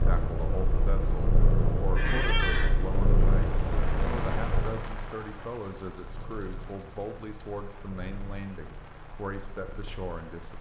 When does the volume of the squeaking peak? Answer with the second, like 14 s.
2 s.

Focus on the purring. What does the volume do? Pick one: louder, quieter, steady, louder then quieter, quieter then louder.
quieter.